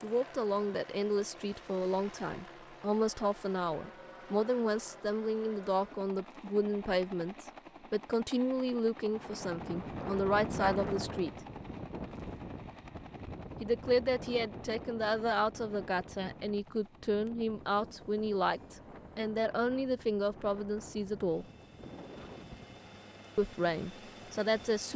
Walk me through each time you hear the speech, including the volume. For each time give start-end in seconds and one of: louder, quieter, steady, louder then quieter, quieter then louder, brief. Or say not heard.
0.0-11.3 steady
13.6-21.4 steady
23.4-24.9 brief.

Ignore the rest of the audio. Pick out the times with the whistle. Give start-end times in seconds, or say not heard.
not heard.